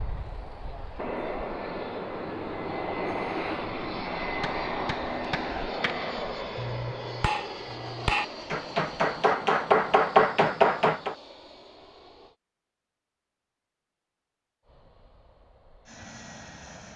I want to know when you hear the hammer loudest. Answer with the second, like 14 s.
10 s.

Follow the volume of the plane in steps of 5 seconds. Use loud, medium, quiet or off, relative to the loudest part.
loud, loud, quiet, quiet.